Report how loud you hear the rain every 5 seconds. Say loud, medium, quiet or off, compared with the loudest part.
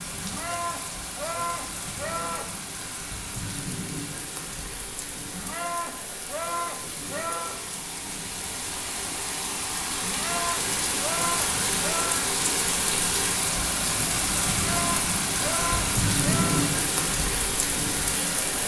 medium, medium, loud, loud.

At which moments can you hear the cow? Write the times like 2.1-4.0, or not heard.
0.2-2.6, 5.3-7.5, 10.0-12.2, 14.5-16.8.